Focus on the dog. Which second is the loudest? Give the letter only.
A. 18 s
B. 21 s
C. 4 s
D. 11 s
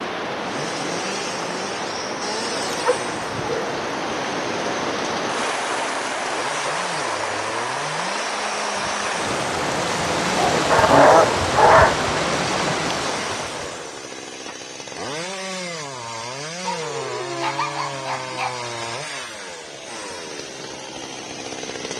D.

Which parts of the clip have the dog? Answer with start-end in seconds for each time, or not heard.
2.6-3.7, 10.3-12.0, 16.6-18.6.